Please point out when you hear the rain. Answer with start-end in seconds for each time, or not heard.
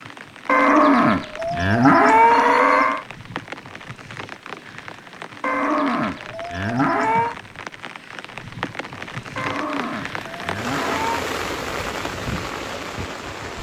0.0-13.5.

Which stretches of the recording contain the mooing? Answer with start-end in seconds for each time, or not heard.
0.5-3.0, 5.4-7.3, 9.3-11.2.